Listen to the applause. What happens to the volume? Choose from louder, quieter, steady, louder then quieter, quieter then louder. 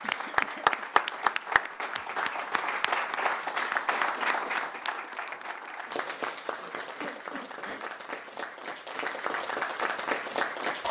quieter then louder.